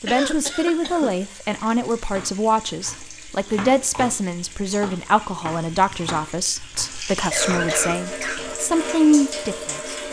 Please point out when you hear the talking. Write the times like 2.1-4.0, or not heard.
0.0-9.9.